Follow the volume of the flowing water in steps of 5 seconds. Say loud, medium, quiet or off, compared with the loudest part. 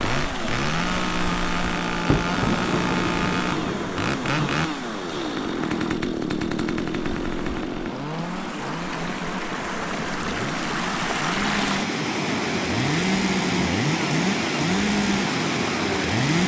medium, medium, loud, loud.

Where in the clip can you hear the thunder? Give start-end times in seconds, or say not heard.
2.0-4.7.